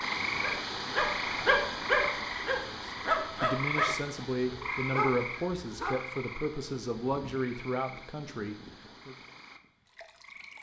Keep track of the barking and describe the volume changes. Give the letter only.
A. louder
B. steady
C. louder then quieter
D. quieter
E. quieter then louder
D.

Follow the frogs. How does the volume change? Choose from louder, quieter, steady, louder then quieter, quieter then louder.
quieter.